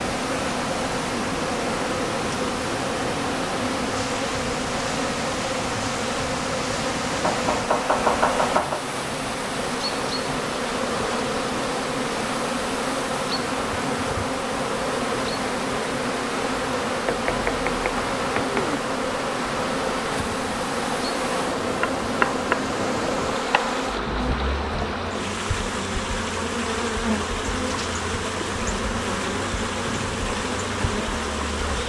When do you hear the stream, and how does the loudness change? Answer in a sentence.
You can hear the stream from 0.0 to 31.8 s, at a steady volume.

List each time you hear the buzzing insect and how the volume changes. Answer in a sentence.
The buzzing insect can be heard from 0.0 to 31.8 s, at a steady volume.